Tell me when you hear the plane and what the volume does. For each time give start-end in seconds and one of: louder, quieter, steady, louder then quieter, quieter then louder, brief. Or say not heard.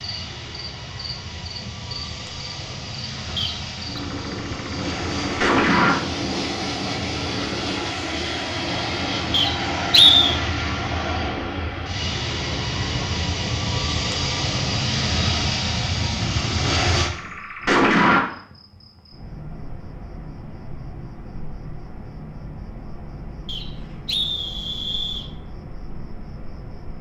0.0-17.1 louder.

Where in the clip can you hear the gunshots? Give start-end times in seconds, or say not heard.
4.0-6.0, 16.2-18.2.